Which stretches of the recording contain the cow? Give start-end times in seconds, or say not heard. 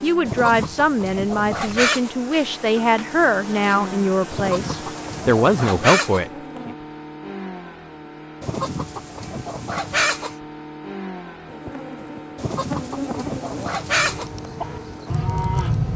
14.0-15.9.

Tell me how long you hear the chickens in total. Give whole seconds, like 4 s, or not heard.
8 s.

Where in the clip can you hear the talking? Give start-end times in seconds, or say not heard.
0.0-6.7.